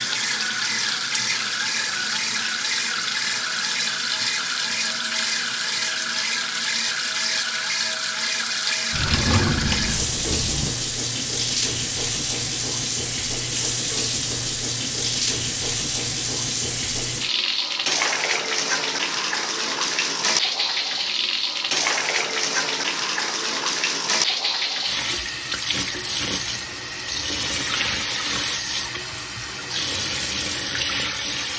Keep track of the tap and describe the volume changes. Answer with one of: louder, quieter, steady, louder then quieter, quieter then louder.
steady.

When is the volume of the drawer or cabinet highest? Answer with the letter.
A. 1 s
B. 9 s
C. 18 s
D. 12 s
B.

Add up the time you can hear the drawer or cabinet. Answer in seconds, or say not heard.
2 s.